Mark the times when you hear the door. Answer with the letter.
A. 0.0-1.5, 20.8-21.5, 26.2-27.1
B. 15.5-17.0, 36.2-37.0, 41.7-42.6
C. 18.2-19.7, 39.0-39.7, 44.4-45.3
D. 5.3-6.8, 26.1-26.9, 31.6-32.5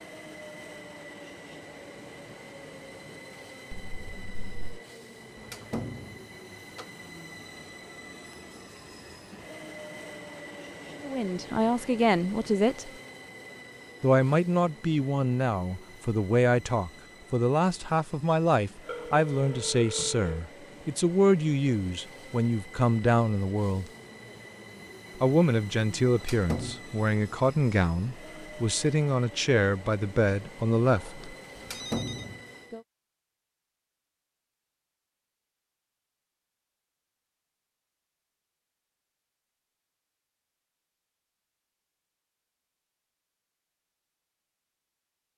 D.